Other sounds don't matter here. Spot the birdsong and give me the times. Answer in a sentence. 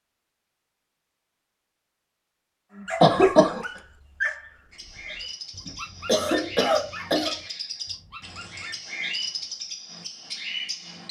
The birdsong can be heard from 4.7 to 11.0 s.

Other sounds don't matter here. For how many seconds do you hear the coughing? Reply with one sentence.
The coughing can be heard for 2 seconds in total.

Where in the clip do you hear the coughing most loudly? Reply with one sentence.
The loudest moment of the coughing is at 3 seconds.